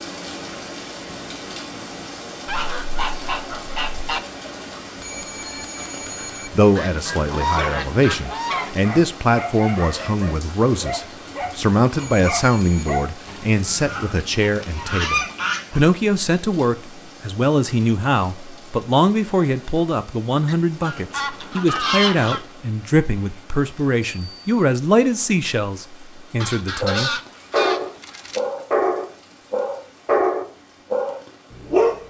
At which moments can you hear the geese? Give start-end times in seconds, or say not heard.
2.5-4.2, 6.8-8.8, 13.2-15.8, 20.4-22.4, 26.4-28.4.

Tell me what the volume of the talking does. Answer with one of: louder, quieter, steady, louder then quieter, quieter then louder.
steady.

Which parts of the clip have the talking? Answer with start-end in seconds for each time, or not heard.
6.2-27.2.